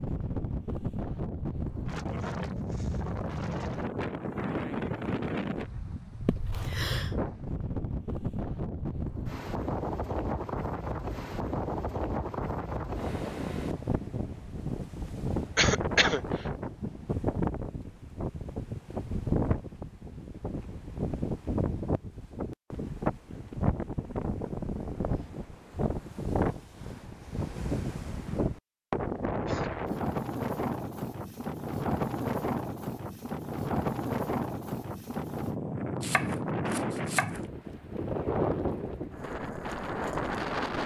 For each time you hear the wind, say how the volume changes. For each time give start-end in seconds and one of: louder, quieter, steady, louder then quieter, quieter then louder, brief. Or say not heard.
0.0-40.8 steady.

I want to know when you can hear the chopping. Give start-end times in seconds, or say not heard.
36.0-37.5.